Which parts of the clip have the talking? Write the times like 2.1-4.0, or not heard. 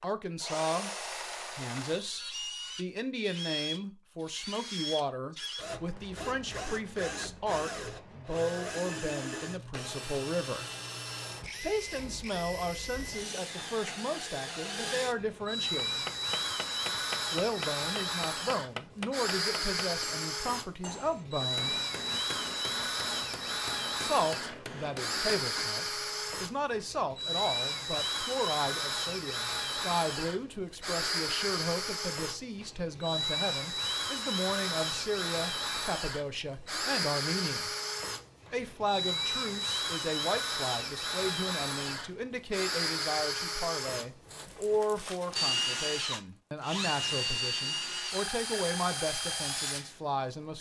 0.0-0.9, 1.5-10.7, 11.6-16.1, 17.3-21.8, 23.9-37.7, 38.5-50.5.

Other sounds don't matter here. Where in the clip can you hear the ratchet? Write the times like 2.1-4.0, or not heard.
not heard.